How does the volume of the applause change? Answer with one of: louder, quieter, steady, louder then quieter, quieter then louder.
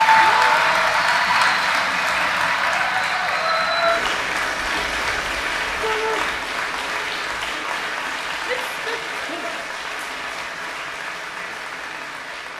quieter.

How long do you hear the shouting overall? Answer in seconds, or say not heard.
2 s.